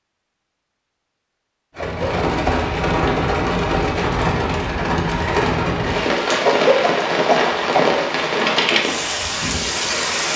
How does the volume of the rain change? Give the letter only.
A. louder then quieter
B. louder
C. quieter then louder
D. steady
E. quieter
D.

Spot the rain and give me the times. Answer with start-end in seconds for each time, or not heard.
1.8-10.3.